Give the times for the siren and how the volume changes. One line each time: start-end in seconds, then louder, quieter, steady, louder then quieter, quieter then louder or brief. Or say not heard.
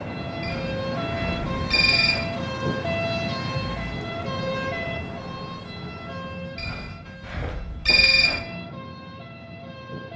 0.0-10.1 quieter.